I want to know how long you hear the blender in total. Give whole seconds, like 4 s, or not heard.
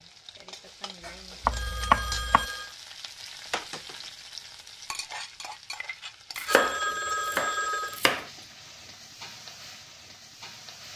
not heard.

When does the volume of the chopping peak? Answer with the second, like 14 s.
2 s.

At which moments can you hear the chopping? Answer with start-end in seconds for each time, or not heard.
1.4-2.5, 6.3-8.2.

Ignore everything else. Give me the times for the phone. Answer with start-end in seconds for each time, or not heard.
1.0-2.8, 6.5-8.0.